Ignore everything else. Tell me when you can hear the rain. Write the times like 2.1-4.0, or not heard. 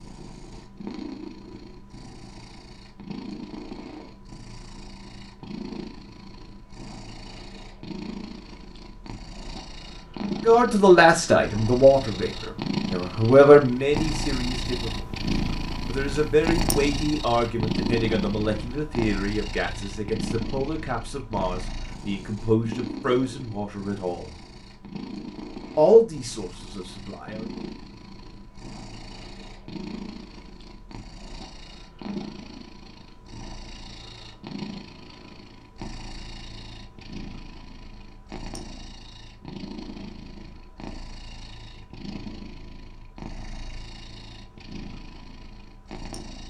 not heard.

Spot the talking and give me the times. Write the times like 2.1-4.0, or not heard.
10.4-15.0, 15.8-24.4, 25.8-27.4.